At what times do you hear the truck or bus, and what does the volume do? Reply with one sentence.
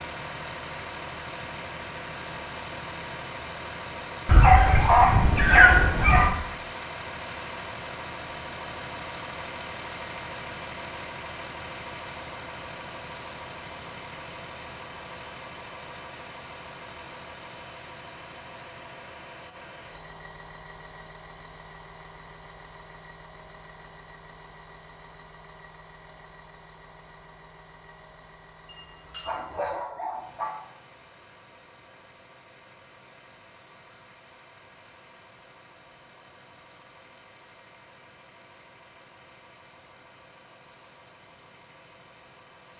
You can hear the truck or bus from 0.0 to 42.7 s, getting quieter.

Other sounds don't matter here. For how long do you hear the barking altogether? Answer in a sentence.
The barking can be heard for 4 seconds in total.